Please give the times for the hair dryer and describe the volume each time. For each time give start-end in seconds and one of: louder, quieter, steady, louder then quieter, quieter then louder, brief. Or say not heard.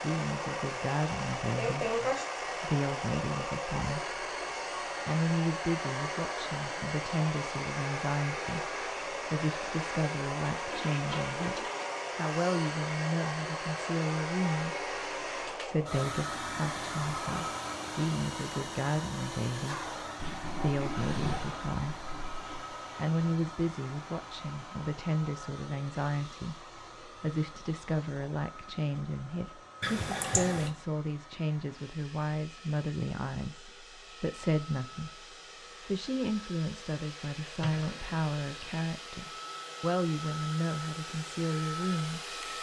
0.0-42.5 quieter then louder.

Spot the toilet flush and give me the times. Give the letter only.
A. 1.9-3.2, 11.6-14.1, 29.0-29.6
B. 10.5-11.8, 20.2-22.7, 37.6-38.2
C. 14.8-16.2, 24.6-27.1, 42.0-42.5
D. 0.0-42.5
B.